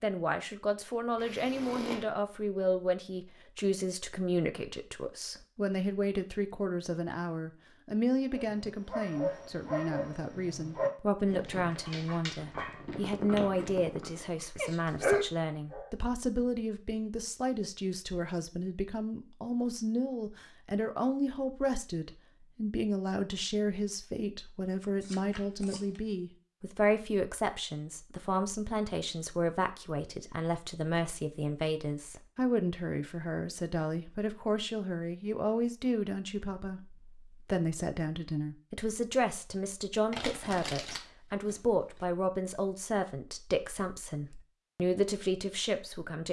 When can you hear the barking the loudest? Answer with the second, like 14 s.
15 s.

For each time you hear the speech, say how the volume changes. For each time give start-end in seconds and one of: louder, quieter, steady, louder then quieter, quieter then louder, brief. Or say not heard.
0.0-46.2 steady.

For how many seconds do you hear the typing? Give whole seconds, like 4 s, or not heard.
not heard.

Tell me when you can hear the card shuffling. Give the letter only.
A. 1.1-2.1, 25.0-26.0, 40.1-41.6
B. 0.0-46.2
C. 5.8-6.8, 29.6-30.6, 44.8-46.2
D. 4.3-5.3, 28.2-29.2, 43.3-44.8
A.